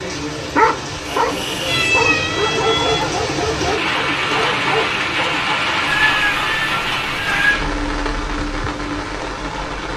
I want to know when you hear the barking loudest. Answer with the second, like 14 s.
1 s.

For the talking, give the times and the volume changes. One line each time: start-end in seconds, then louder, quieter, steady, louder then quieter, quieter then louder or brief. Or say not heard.
not heard.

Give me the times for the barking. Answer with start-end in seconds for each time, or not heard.
0.3-5.5.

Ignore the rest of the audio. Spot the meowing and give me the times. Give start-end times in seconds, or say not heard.
1.6-3.0, 5.8-7.5.